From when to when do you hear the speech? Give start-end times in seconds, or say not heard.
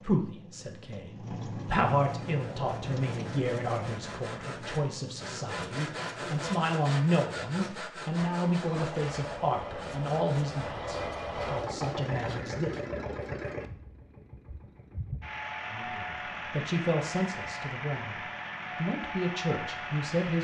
0.0-12.7, 15.7-20.3.